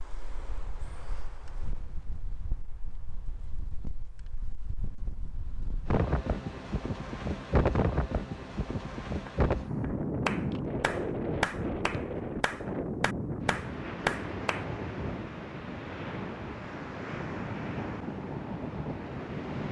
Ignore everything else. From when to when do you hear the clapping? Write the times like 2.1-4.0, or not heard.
9.2-14.7.